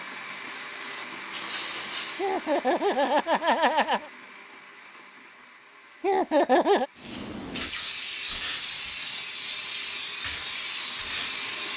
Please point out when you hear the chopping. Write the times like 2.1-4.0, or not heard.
not heard.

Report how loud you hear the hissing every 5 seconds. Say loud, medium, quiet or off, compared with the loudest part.
medium, loud, loud.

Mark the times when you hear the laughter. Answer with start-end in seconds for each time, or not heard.
2.1-4.1, 6.0-6.8.